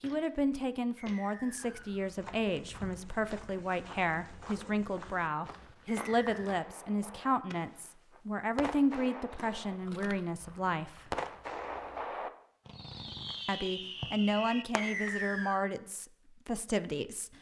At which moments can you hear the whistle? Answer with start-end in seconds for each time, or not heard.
0.9-1.9, 5.8-6.5, 14.8-15.6.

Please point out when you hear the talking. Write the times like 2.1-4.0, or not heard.
0.0-11.1, 13.4-17.3.